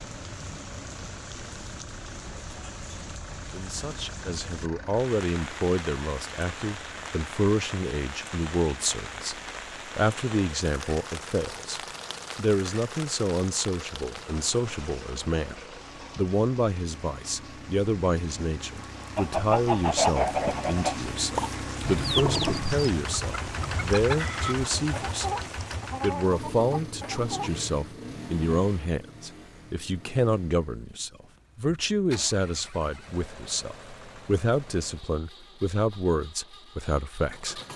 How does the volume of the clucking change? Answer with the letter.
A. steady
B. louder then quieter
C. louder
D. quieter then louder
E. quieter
E.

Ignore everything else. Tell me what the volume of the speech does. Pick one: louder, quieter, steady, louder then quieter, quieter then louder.
steady.